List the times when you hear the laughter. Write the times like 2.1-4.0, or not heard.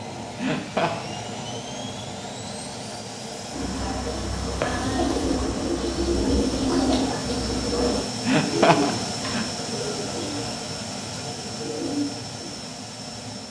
0.3-0.9, 8.2-9.4.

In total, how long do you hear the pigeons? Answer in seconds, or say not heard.
9 s.